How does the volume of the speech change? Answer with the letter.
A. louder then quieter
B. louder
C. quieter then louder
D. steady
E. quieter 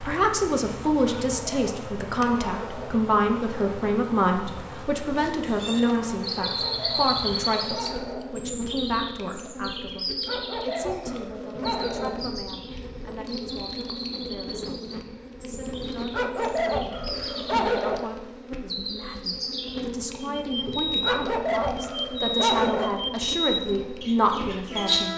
C.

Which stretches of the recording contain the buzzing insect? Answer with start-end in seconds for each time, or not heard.
0.0-25.1.